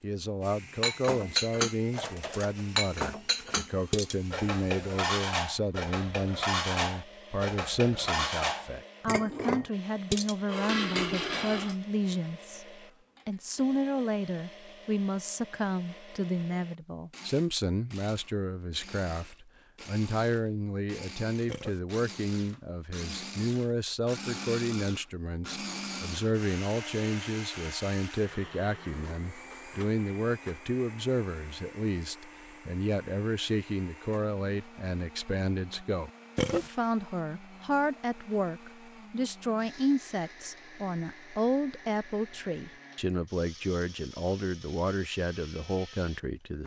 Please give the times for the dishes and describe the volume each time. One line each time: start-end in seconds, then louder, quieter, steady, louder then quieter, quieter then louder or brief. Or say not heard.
0.8-11.8 steady.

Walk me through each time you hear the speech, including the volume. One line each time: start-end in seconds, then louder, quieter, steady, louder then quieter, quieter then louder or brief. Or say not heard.
0.0-46.6 steady.